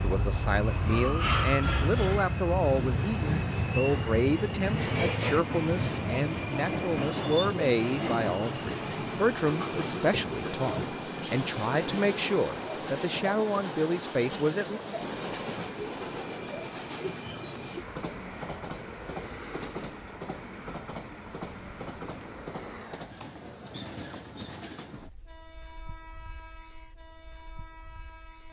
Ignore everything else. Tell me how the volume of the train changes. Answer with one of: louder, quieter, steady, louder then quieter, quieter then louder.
quieter.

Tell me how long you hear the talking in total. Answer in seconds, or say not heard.
15 s.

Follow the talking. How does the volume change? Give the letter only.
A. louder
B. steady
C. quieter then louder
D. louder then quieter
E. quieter
B.